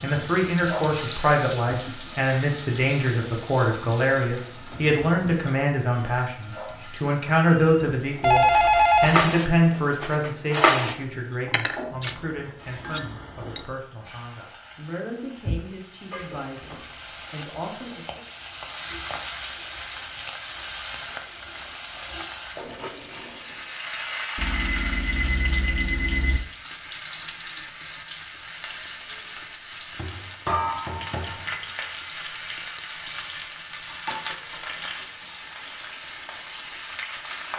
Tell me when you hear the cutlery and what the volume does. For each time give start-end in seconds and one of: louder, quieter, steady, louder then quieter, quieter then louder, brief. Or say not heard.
7.5-13.7 louder then quieter.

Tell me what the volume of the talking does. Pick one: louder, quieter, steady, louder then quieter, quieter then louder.
quieter.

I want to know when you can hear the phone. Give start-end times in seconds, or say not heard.
8.2-9.2, 24.4-26.4.